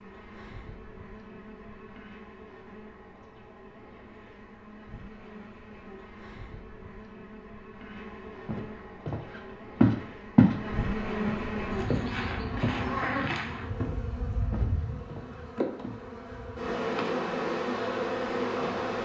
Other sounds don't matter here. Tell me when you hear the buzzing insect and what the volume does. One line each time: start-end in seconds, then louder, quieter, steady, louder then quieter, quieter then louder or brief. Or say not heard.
0.0-19.0 louder.